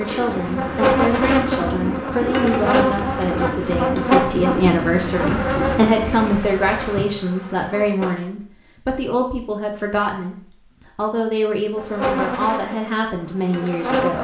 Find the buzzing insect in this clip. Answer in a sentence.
The buzzing insect can be heard from 0.0 to 8.2 s and from 11.8 to 14.1 s.